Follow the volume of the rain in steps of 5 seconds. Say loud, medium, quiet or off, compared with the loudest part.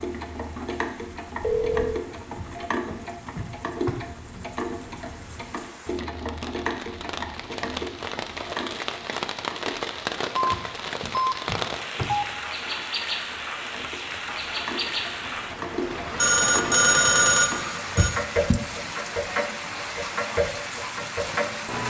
quiet, loud, loud, loud, loud.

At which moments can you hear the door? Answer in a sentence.
You can hear the door from 2.4 to 4.5 s, from 10.5 to 12.1 s and from 17.9 to 18.6 s.